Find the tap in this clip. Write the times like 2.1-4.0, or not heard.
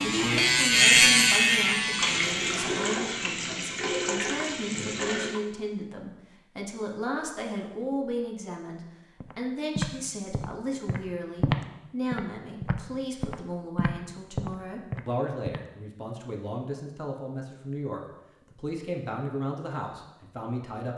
1.9-5.4.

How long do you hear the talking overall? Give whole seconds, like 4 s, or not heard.
21 s.